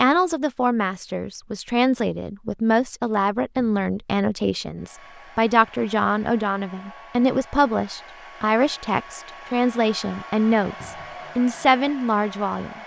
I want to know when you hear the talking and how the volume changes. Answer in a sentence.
You can hear the talking from 0.0 to 12.8 s, at a steady volume.